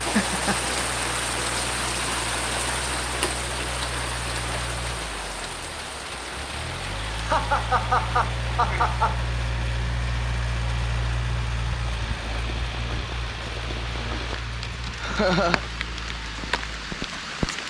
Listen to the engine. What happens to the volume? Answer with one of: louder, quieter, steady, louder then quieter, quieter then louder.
louder then quieter.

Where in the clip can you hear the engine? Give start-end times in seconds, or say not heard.
0.2-17.5.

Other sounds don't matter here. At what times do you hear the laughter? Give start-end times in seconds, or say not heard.
0.1-0.8, 7.1-9.2, 15.0-15.6.